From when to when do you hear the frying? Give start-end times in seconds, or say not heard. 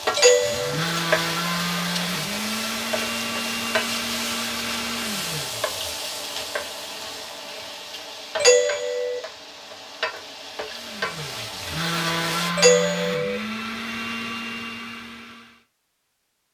0.0-12.5.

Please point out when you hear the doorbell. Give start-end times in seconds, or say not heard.
0.1-0.8, 8.3-9.2, 12.6-13.4.